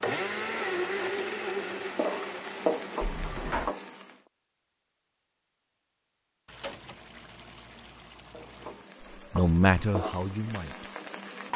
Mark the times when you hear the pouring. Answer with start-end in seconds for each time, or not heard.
6.5-8.8.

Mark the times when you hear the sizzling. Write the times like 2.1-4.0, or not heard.
0.0-4.2, 8.3-11.5.